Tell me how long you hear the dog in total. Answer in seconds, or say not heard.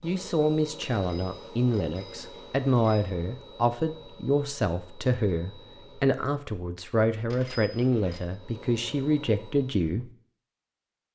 not heard.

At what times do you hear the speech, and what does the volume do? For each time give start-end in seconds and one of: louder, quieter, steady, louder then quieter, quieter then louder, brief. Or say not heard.
0.0-10.1 steady.